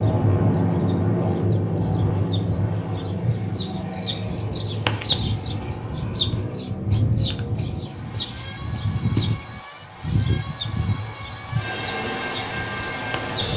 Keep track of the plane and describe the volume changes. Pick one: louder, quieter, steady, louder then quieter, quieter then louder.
quieter then louder.